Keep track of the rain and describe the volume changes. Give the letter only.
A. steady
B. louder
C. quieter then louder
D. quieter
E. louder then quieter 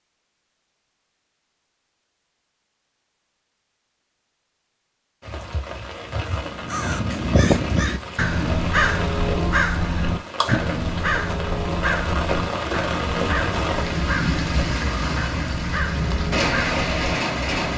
B.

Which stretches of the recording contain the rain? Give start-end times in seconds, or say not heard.
5.2-17.7.